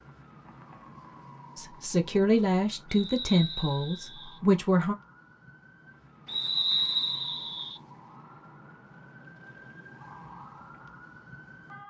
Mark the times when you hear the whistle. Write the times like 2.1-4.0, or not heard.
2.9-4.4, 6.2-7.8.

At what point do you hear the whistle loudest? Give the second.
7 s.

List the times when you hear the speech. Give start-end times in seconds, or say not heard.
1.6-5.0.